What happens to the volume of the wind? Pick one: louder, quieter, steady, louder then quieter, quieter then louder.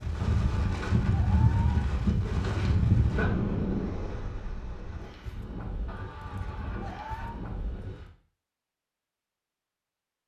quieter.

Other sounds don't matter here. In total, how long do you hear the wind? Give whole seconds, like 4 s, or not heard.
8 s.